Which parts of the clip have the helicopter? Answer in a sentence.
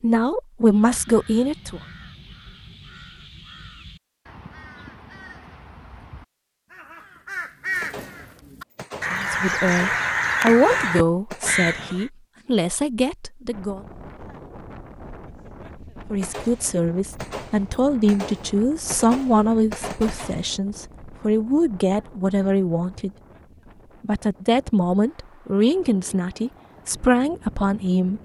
You can't hear the helicopter here.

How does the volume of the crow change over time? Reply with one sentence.
The volume of the crow goes up.